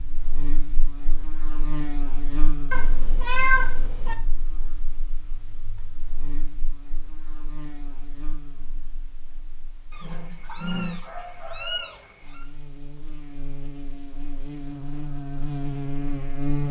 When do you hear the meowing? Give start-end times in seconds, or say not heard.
2.7-4.2, 9.9-12.5.